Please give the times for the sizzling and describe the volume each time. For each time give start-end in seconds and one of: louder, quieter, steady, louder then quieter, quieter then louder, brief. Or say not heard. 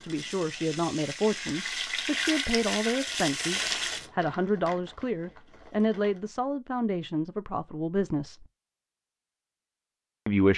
0.0-4.1 louder.